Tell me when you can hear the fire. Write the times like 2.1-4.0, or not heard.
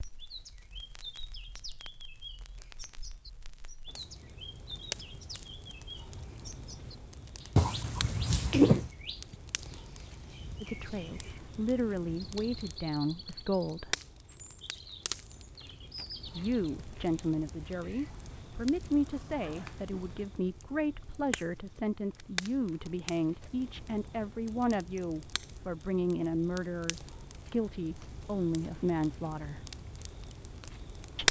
0.0-31.2.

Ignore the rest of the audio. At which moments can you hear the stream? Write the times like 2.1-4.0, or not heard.
not heard.